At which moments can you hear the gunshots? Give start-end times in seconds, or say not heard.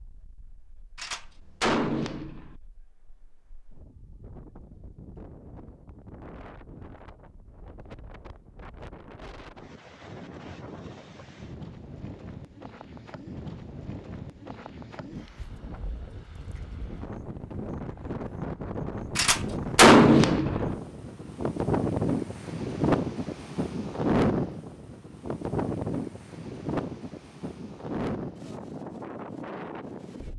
0.9-2.5, 19.1-20.8.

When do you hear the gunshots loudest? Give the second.
20 s.